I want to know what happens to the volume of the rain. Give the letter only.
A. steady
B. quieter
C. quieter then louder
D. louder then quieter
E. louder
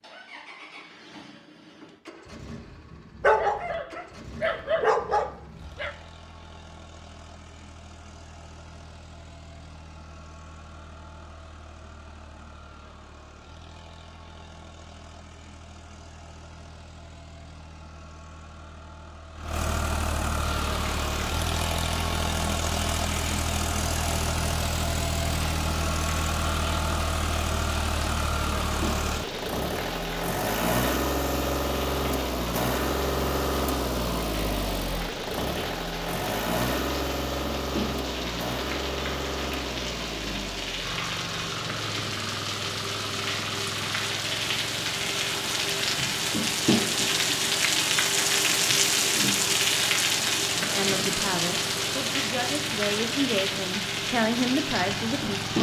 E.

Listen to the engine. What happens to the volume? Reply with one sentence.
The loudness of the engine goes up, then down.